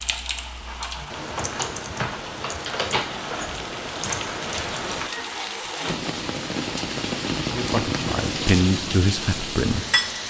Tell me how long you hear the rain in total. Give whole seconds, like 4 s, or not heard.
10 s.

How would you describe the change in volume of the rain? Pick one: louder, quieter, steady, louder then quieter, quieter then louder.
louder.